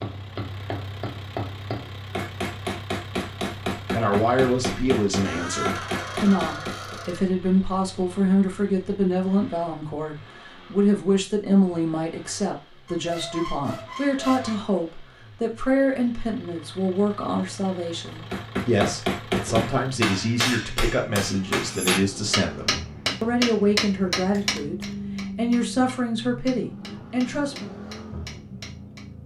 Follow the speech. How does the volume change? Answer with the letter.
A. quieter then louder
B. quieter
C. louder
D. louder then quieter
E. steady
E.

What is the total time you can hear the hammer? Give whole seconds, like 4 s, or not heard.
18 s.